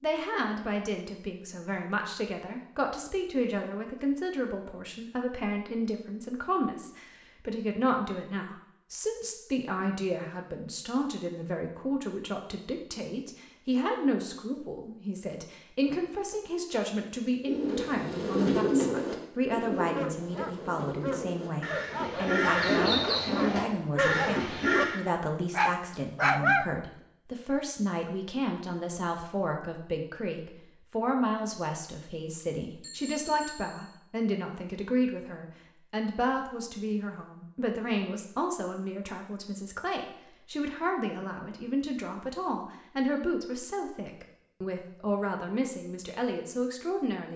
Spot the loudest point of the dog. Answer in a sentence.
The volume of the dog peaks at 26 seconds.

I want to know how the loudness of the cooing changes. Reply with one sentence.
The volume of the cooing goes down, then up.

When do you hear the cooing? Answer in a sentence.
You can hear the cooing from 17.4 to 25.0 s.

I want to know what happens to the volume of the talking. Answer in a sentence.
The loudness of the talking stays about the same.